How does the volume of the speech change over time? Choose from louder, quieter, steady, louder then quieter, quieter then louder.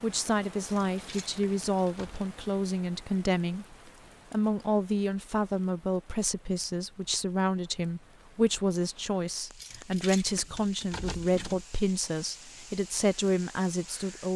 steady.